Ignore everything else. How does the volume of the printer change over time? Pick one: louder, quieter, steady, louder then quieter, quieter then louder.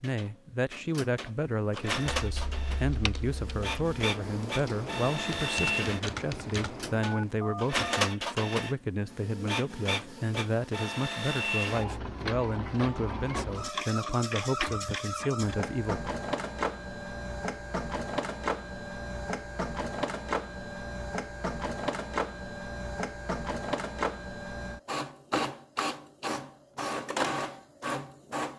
steady.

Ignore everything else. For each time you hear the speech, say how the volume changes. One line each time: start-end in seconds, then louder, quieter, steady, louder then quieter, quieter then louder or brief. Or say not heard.
0.0-16.1 steady.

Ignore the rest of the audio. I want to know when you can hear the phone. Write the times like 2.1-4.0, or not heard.
7.0-8.1.